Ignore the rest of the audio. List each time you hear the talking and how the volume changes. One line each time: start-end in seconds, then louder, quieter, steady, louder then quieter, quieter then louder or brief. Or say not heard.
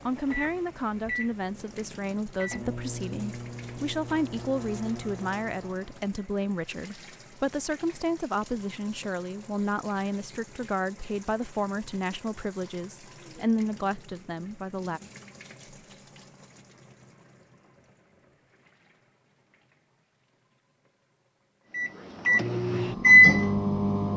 0.1-15.0 steady.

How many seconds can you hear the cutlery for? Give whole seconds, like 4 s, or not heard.
not heard.